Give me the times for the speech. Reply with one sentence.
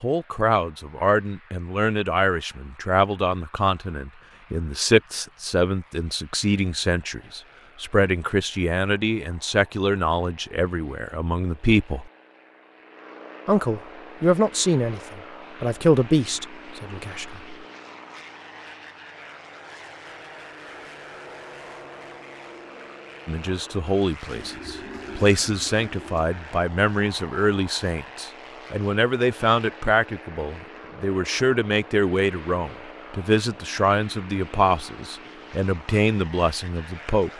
You can hear the speech from 0.0 to 12.1 s, from 13.4 to 17.6 s and from 23.2 to 37.3 s.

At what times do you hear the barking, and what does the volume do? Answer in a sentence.
You can't hear the barking here.